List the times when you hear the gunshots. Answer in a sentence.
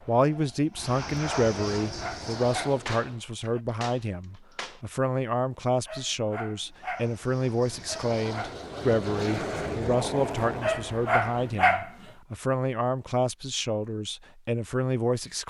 You can hear the gunshots from 2.9 to 4.8 s.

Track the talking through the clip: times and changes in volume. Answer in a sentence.
You can hear the talking from 0.1 to 15.4 s, at a steady volume.